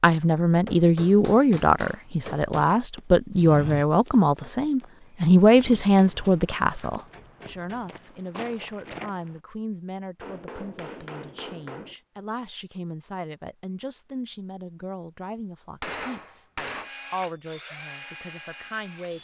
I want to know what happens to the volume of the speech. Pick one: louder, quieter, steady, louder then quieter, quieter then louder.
quieter.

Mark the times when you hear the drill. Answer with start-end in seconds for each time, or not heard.
16.8-19.1.